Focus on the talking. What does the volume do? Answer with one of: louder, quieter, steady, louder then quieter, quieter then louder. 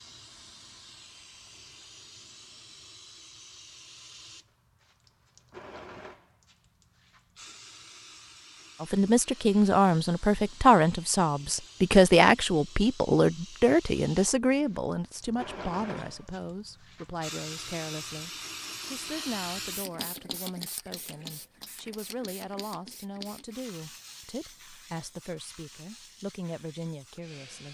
quieter.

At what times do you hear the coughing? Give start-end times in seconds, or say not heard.
15.9-16.4.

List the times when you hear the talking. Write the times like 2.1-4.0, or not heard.
8.8-27.7.